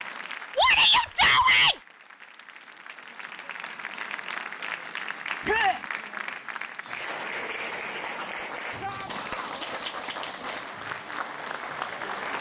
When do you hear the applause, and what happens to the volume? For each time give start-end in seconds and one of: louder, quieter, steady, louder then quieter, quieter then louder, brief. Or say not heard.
0.0-12.3 louder.